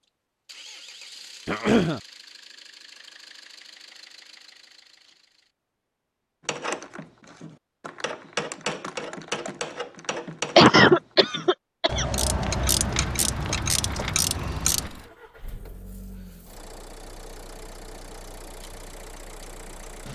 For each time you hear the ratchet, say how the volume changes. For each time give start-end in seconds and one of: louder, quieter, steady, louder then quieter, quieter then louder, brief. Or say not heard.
6.5-14.9 louder.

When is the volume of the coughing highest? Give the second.
11 s.